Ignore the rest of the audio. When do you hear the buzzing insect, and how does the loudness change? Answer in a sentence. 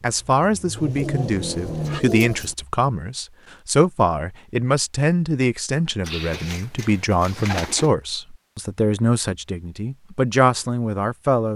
The buzzing insect can't be heard in this clip.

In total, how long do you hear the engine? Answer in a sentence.
The engine can be heard for 2 seconds in total.